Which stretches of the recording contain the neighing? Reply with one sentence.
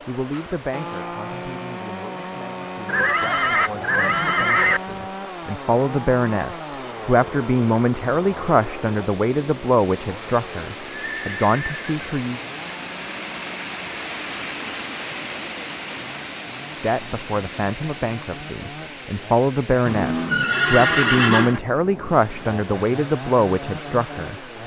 You can hear the neighing from 2.9 to 4.8 s, from 11.1 to 11.9 s and from 19.9 to 21.6 s.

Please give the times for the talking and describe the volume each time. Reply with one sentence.
The talking can be heard from 0.1 to 12.4 s, getting louder; and from 16.8 to 24.4 s, getting louder.